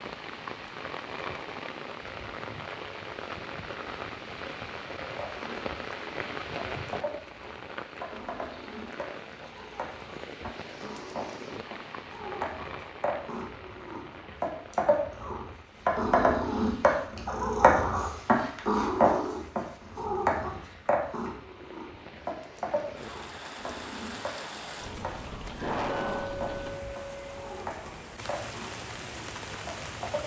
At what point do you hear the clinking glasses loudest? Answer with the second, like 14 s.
26 s.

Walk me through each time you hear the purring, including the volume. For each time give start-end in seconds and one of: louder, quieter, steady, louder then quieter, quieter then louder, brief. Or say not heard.
5.2-30.2 louder then quieter.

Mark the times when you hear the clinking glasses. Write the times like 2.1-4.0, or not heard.
25.9-27.5.